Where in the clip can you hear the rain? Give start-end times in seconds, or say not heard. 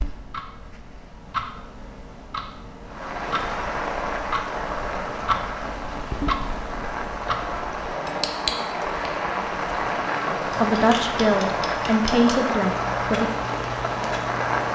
2.9-14.7.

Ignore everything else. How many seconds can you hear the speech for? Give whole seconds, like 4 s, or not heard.
3 s.